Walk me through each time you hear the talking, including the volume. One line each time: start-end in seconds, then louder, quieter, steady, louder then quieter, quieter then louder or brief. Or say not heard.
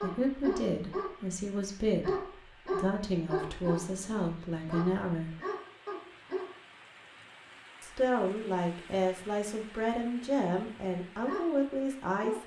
0.0-5.3 steady
7.8-12.4 steady.